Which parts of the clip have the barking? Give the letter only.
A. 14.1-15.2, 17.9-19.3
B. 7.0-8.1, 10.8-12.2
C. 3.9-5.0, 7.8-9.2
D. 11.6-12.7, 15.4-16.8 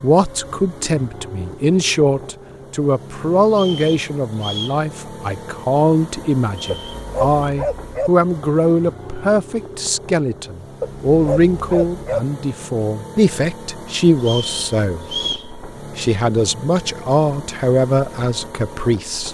B.